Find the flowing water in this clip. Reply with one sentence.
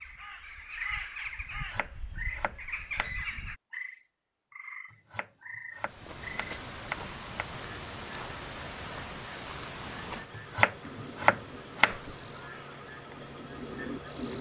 The flowing water can be heard from 5.8 to 14.2 s.